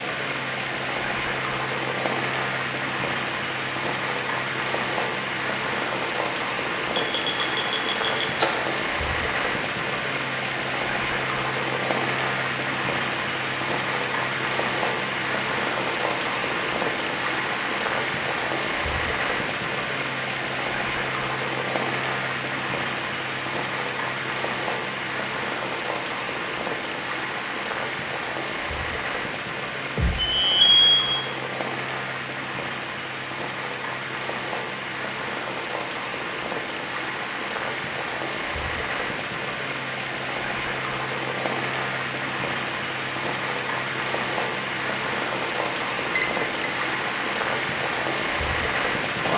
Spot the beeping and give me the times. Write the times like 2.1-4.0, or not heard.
7.0-8.7, 29.9-30.9, 46.1-46.7.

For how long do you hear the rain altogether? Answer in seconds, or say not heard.
49 s.